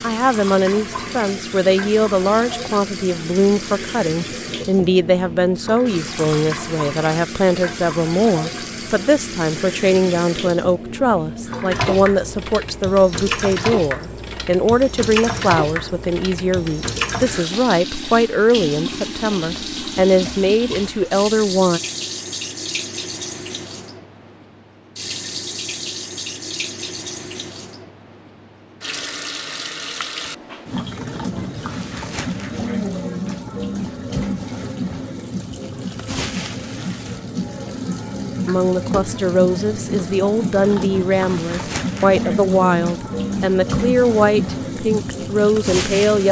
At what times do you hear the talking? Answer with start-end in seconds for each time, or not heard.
0.0-21.8, 38.5-46.2.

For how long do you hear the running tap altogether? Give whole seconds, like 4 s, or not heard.
46 s.